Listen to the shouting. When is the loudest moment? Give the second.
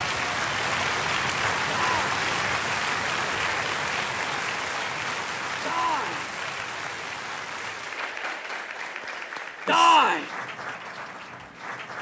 10 s.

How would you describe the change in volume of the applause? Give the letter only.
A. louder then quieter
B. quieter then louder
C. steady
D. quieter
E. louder
D.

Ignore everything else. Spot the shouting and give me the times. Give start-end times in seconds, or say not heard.
1.6-2.1, 5.6-6.2, 9.7-10.3.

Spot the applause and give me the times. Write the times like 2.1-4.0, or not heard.
0.0-11.9.